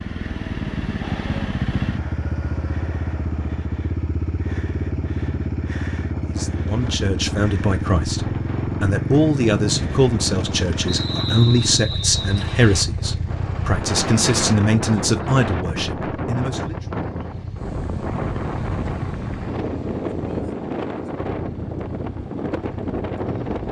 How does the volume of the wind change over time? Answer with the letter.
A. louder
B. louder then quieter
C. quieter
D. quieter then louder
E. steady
A.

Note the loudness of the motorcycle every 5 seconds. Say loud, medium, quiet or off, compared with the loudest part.
loud, loud, loud, medium, medium.